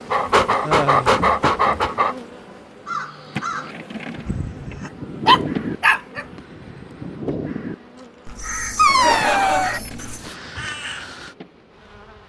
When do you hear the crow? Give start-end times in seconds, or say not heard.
2.9-11.3.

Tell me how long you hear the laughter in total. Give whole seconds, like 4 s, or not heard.
2 s.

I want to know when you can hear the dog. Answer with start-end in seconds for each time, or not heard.
0.1-2.1, 4.8-6.2, 8.2-10.2.